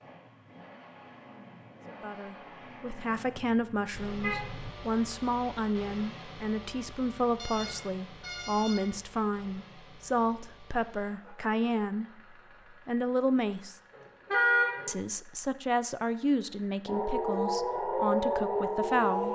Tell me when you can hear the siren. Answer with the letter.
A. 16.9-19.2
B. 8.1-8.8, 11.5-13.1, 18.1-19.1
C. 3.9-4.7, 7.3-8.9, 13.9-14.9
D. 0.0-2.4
A.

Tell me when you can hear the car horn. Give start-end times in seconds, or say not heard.
3.9-4.7, 7.3-8.9, 13.9-14.9.